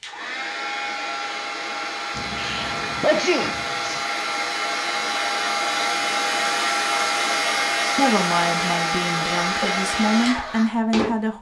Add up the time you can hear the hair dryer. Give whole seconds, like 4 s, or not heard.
11 s.